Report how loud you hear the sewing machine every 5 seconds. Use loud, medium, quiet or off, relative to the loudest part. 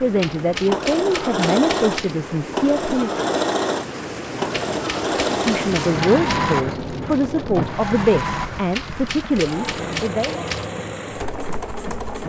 loud, loud, medium.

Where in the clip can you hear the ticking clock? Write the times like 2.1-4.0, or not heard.
not heard.